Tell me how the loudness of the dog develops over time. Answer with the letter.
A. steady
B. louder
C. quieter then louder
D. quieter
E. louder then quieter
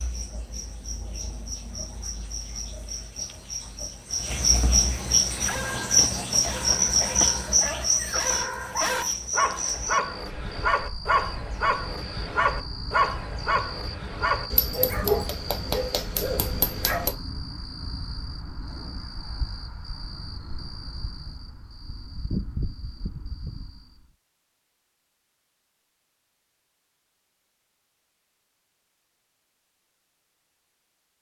B.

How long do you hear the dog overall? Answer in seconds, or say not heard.
12 s.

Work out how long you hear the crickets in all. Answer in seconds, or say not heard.
24 s.